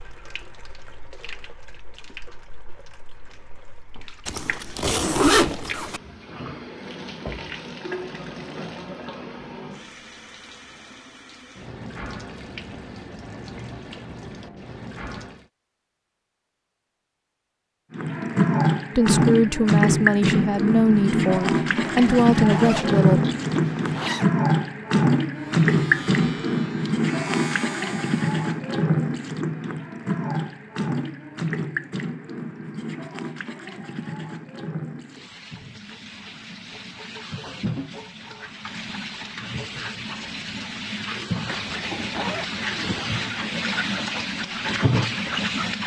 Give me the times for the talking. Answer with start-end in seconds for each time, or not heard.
18.9-23.2.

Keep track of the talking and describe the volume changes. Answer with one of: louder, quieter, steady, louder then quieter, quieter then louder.
steady.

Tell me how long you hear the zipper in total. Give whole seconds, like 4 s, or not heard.
5 s.